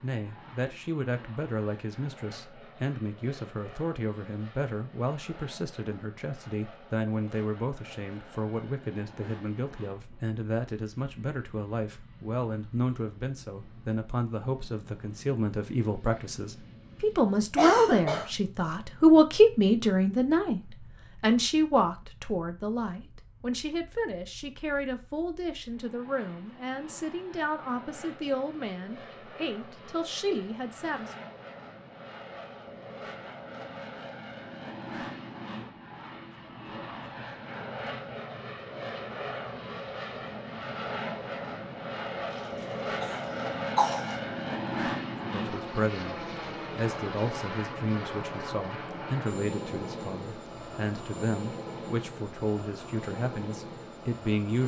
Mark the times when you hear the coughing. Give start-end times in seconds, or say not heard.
17.6-18.2, 42.3-44.1.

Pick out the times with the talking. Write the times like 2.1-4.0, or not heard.
0.0-31.1, 45.2-54.6.